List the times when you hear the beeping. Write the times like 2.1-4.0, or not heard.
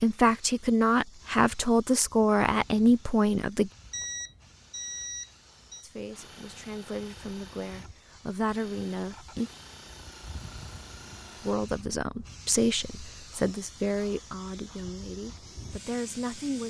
3.9-5.8.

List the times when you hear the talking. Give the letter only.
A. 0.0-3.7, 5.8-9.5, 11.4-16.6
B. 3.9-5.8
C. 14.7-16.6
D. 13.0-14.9
A.